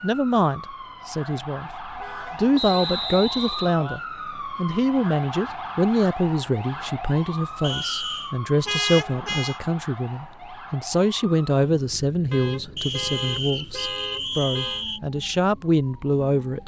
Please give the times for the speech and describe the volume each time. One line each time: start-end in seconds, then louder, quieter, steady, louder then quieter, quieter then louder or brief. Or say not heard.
0.0-16.6 steady.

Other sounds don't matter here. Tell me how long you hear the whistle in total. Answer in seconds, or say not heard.
4 s.